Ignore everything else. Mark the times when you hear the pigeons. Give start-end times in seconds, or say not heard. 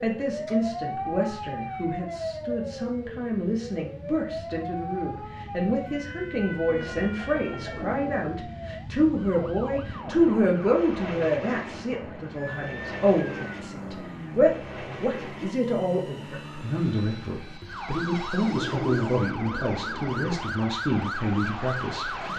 6.7-8.1, 18.4-20.4.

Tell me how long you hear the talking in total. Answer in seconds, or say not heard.
22 s.